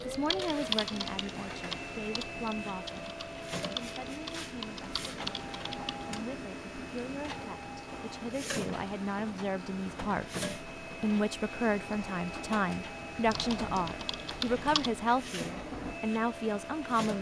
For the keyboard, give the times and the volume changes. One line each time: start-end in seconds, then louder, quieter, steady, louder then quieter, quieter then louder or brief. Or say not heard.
0.0-6.2 quieter then louder
13.2-14.9 brief.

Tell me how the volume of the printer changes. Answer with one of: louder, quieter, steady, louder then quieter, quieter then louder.
steady.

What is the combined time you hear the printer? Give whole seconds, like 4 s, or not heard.
17 s.